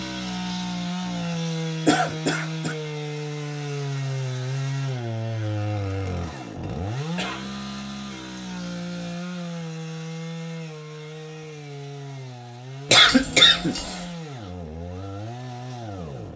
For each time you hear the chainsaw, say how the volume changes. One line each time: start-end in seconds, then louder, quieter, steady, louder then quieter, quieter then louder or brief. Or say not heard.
0.0-16.3 quieter.